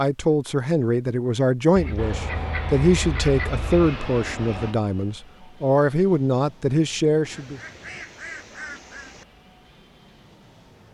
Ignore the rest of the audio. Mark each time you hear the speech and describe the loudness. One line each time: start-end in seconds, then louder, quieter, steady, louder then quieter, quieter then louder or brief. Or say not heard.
0.0-7.6 steady.